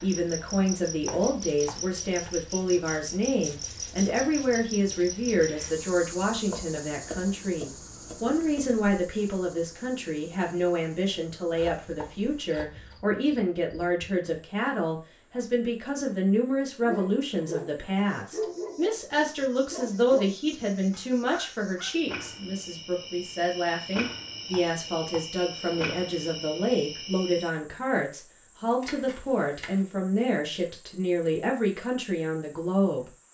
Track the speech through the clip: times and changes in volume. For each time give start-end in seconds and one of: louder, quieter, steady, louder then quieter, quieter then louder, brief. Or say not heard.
0.0-33.1 steady.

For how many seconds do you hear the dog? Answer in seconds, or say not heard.
5 s.